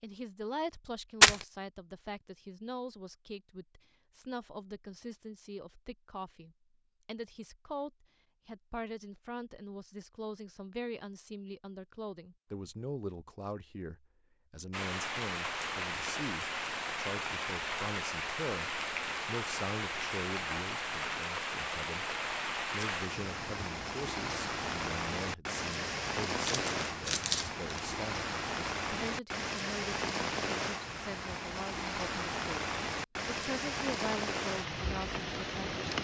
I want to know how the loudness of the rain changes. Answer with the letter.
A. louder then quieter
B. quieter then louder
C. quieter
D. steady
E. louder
D.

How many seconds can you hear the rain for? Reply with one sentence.
You can hear the rain for 21 seconds altogether.